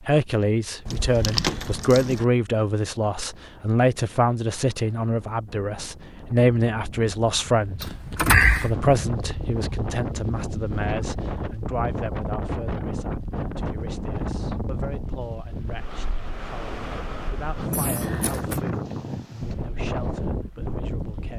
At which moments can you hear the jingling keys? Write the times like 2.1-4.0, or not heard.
0.8-2.2, 7.8-8.7, 17.7-18.6.